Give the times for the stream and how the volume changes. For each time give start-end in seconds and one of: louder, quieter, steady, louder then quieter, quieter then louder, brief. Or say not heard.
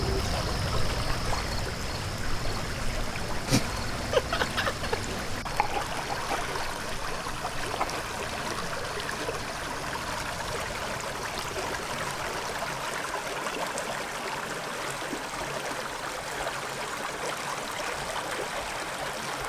0.0-19.4 steady.